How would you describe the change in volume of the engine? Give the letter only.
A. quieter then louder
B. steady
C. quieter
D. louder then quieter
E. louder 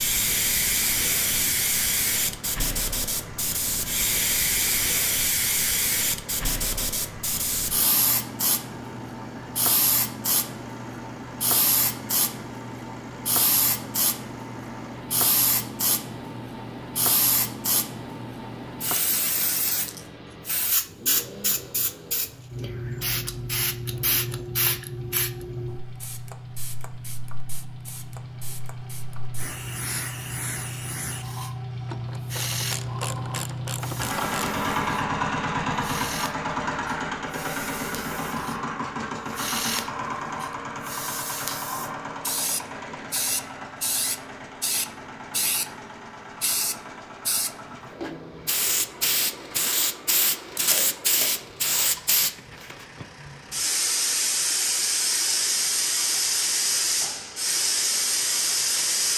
D.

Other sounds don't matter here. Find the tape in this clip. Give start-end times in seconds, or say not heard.
50.5-51.2.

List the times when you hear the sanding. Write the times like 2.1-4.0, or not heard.
not heard.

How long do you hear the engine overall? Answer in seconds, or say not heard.
59 s.